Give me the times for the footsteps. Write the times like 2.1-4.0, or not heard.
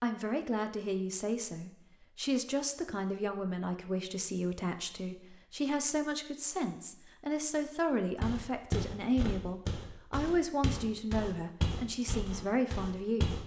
8.2-13.4.